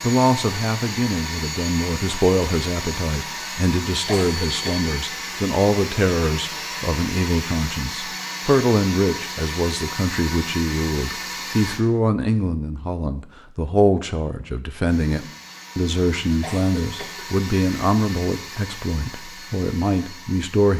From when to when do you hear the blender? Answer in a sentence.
The blender can be heard from 0.0 to 11.8 s and from 14.8 to 20.7 s.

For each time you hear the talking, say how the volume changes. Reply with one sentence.
You can hear the talking from 0.0 to 20.7 s, at a steady volume.